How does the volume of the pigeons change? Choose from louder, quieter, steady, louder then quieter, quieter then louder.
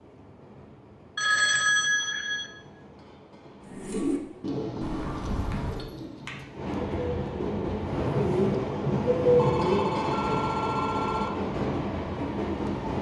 quieter then louder.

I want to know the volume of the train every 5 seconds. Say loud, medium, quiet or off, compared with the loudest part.
quiet, loud, loud.